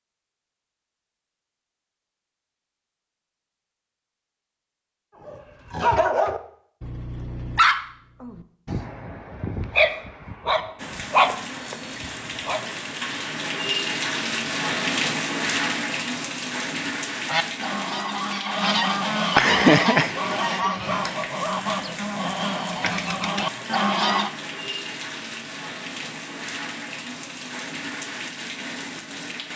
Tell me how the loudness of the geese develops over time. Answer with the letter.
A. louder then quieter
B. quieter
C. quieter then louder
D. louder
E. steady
A.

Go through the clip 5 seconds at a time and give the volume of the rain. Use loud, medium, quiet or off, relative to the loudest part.
off, off, loud, loud, medium, medium.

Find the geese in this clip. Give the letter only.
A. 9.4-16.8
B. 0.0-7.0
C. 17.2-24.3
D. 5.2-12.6
C.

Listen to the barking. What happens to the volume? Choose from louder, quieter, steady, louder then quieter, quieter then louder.
quieter then louder.